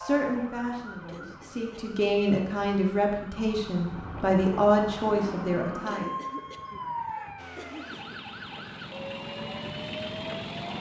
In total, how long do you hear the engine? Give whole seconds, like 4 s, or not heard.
3 s.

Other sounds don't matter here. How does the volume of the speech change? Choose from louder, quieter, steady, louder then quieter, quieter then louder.
louder.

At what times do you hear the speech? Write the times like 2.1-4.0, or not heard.
0.0-6.2.